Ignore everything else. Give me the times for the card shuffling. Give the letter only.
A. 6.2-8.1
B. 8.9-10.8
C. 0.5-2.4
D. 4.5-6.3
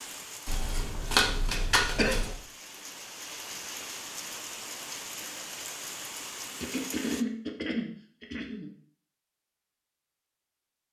C.